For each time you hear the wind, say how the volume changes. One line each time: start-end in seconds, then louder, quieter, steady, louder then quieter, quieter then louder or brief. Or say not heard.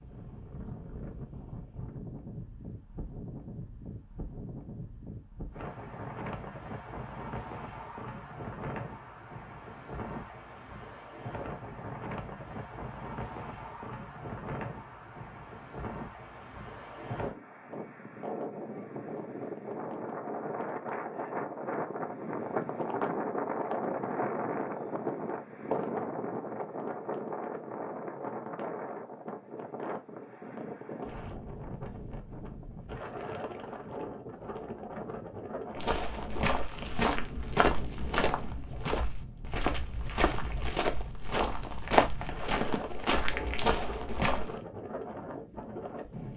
0.0-46.3 louder then quieter.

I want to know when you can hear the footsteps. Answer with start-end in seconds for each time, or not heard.
35.8-44.5.